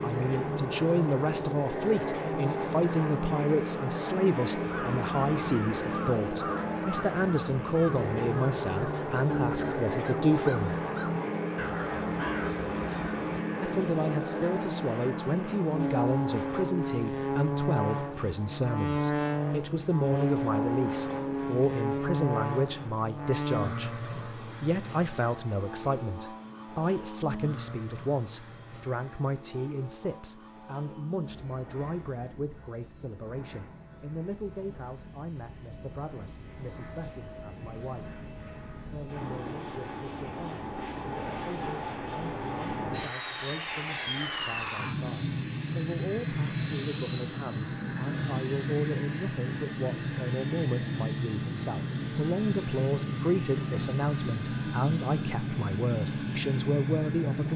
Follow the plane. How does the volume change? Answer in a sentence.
The loudness of the plane goes down, then up.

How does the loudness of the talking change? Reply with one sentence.
The volume of the talking goes down, then up.